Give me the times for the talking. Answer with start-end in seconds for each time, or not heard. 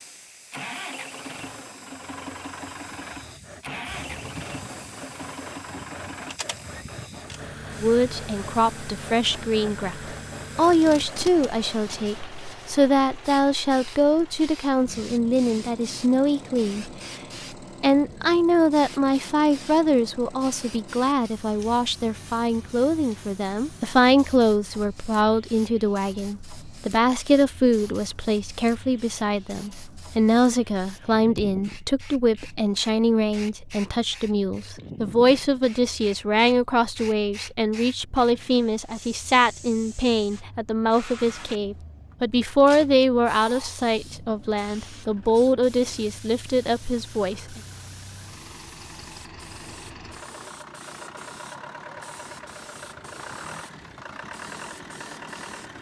7.8-16.9, 17.8-47.6.